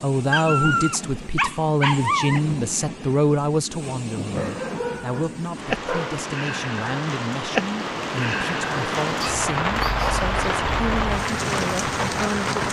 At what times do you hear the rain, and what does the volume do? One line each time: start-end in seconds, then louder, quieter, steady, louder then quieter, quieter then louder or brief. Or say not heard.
0.0-12.6 louder.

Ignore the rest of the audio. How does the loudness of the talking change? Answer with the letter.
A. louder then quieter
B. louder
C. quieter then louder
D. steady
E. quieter
E.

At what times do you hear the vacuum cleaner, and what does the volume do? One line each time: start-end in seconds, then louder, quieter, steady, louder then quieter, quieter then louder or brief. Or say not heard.
not heard.